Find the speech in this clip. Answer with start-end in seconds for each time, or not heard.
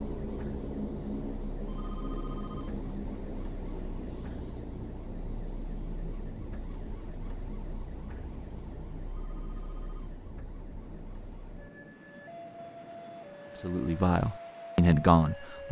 13.6-15.6.